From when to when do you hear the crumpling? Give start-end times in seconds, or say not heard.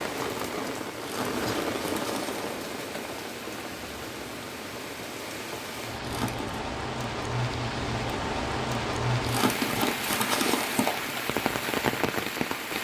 1.0-2.5, 6.0-6.5, 9.2-11.1.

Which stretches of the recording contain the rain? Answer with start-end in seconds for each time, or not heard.
0.0-12.7.